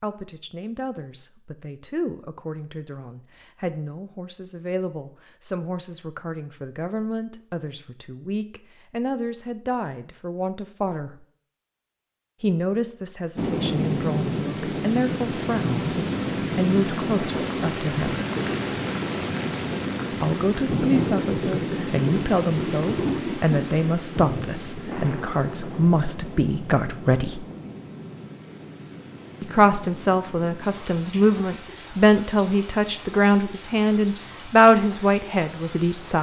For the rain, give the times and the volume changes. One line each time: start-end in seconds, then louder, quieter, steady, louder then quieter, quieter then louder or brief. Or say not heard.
13.3-36.1 quieter.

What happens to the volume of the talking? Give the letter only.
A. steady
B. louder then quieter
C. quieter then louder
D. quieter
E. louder
E.